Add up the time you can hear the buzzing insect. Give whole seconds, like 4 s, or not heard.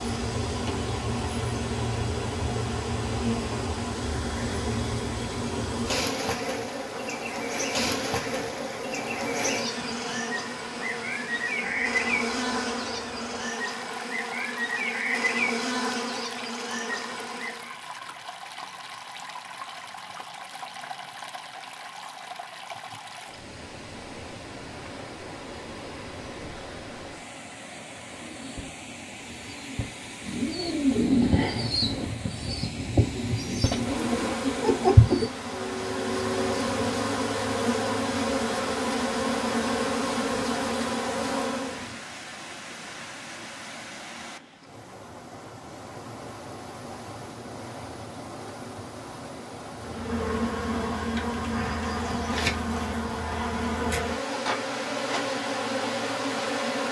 33 s.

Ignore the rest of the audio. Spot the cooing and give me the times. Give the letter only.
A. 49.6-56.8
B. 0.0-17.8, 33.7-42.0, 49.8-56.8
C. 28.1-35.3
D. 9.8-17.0
C.